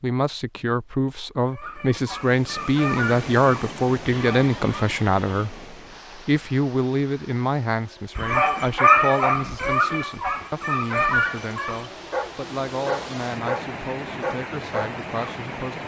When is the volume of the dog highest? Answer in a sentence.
The loudest moment of the dog is at 9 seconds.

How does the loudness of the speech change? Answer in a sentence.
The loudness of the speech goes down.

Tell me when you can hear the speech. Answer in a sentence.
The speech can be heard from 0.0 to 15.8 s.